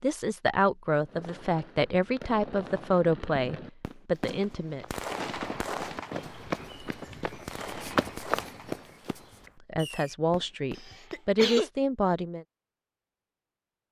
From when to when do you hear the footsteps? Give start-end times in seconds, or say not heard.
4.2-9.2.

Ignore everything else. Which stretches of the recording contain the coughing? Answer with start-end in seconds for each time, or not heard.
10.8-11.7.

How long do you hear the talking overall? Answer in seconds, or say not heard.
8 s.